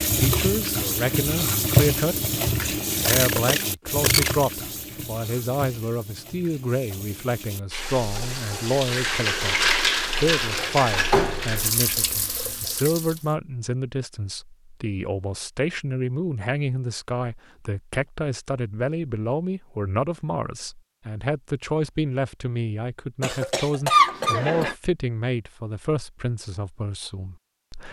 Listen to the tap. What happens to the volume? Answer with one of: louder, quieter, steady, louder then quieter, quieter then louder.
quieter then louder.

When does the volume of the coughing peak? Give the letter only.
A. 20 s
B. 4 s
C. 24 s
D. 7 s
C.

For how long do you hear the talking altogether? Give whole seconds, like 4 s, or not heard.
27 s.